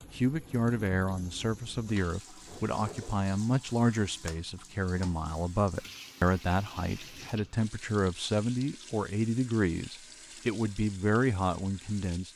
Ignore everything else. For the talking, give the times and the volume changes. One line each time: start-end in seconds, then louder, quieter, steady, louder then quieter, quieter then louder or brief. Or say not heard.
0.0-12.3 steady.